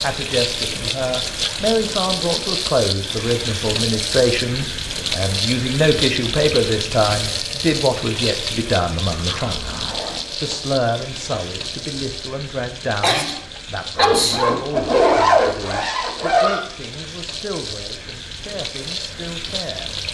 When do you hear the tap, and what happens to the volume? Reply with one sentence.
You can hear the tap from 0.0 to 20.0 s, getting quieter.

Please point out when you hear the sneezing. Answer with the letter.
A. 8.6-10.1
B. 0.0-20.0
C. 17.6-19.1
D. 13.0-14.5
D.